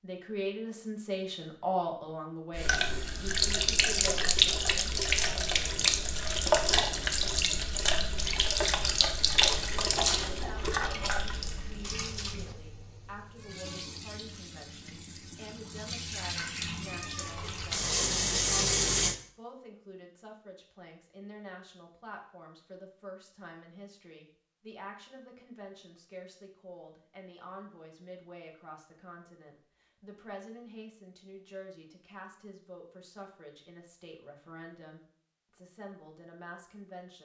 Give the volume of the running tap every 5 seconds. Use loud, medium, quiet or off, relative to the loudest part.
loud, loud, medium, loud, off, off, off, off.